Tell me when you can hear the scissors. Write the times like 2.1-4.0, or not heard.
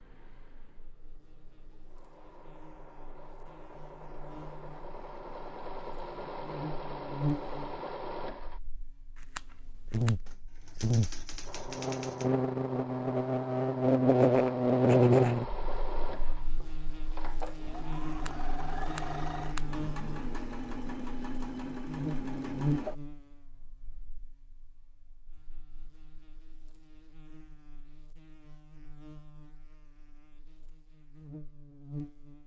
9.2-10.2, 18.1-19.8.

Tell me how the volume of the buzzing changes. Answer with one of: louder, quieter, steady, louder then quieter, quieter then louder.
louder then quieter.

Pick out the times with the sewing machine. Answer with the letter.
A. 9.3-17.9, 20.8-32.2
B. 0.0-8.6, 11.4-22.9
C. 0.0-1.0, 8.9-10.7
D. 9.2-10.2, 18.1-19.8
B.